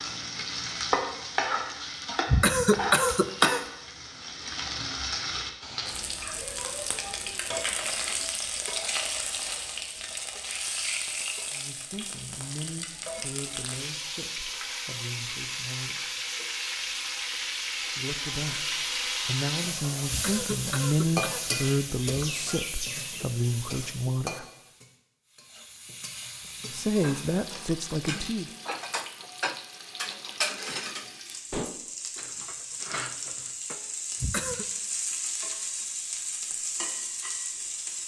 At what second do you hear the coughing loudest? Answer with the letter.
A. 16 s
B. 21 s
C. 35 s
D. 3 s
D.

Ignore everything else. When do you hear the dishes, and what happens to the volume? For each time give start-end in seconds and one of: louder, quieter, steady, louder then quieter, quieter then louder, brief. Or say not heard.
27.0-33.9 louder then quieter.